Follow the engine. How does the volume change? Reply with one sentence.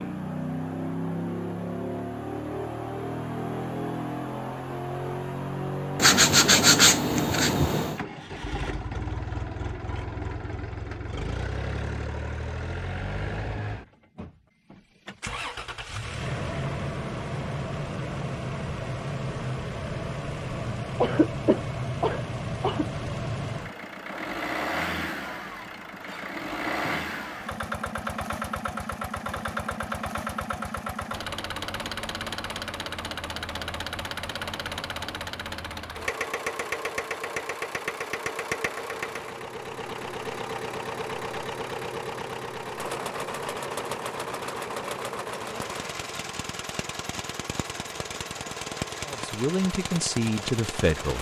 The volume of the engine stays about the same.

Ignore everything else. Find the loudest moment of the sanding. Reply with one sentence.
The volume of the sanding peaks at 7 seconds.